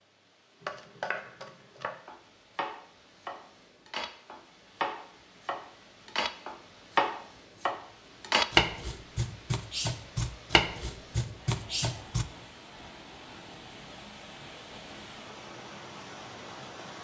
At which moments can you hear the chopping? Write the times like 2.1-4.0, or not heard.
0.6-12.2.